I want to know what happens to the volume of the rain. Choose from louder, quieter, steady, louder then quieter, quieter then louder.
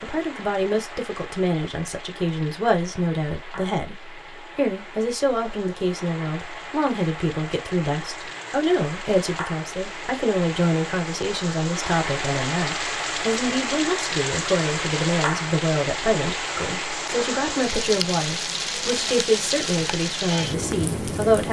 louder.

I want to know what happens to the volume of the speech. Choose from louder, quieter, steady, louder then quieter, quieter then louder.
steady.